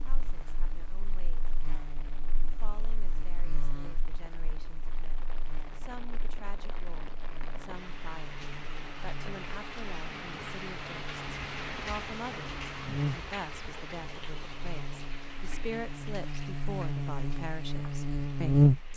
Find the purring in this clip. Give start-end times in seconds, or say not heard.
not heard.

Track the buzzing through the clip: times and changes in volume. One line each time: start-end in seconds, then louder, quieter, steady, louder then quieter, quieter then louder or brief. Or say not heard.
0.0-18.9 quieter then louder.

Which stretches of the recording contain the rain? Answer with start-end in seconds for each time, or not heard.
0.0-18.9.